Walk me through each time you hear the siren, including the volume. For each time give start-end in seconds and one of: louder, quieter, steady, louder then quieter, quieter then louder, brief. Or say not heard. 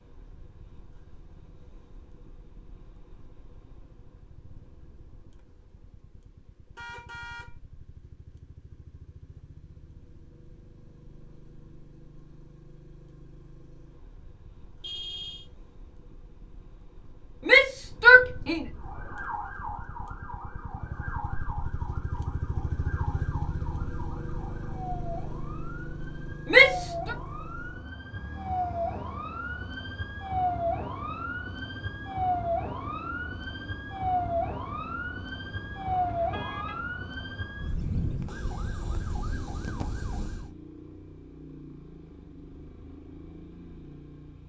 18.8-40.5 louder.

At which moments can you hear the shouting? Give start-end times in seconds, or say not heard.
17.4-18.6, 26.5-27.1.